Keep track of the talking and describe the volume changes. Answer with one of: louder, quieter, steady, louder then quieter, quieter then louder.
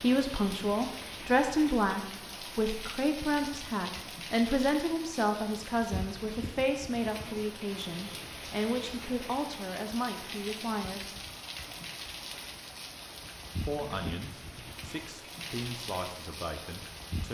quieter.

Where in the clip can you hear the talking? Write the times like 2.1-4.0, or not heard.
0.0-11.1, 13.7-17.2.